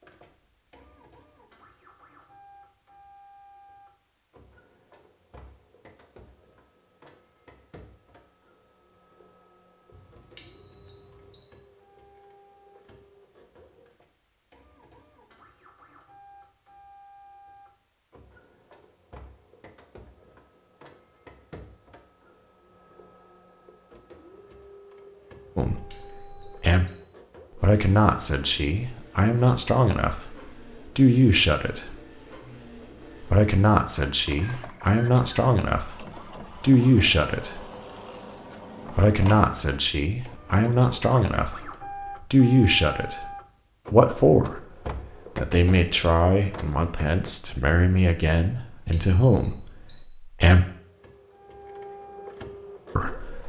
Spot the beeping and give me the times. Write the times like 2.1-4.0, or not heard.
9.9-11.4, 25.4-27.0, 48.6-50.0.